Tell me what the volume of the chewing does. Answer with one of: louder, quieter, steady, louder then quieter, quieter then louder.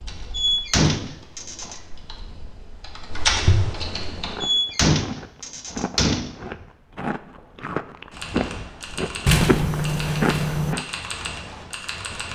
louder.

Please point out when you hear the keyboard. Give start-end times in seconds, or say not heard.
0.0-4.4, 8.1-12.2.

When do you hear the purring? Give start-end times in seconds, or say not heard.
not heard.